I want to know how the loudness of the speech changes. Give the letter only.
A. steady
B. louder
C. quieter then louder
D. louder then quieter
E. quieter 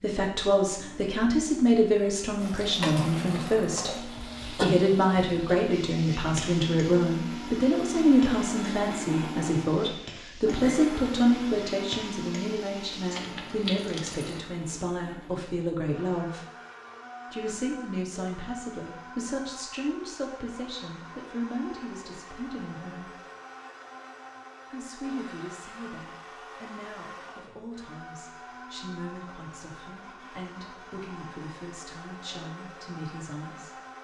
E.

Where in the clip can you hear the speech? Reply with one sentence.
The speech can be heard from 0.0 to 16.4 s, from 17.3 to 23.1 s and from 24.7 to 33.8 s.